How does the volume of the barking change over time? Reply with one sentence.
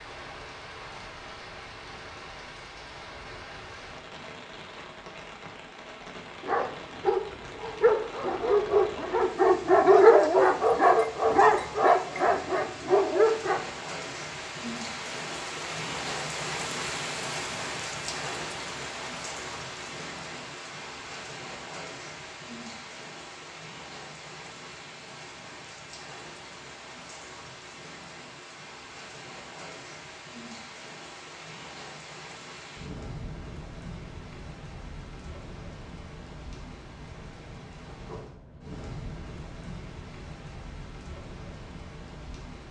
The loudness of the barking goes up, then down.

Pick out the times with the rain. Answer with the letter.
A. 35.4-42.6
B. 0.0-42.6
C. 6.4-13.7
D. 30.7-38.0
B.